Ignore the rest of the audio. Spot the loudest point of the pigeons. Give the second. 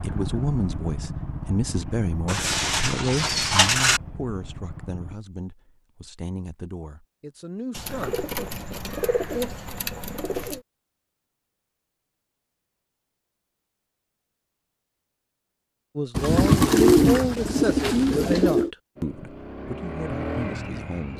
17 s.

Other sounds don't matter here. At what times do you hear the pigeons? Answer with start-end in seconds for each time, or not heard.
2.2-4.0, 7.8-10.6, 16.1-18.7.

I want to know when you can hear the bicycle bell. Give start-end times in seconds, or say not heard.
not heard.